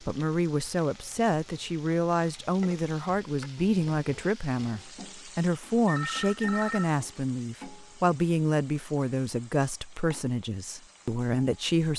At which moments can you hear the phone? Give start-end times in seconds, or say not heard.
5.8-7.0.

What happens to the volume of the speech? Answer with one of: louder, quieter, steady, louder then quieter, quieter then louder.
steady.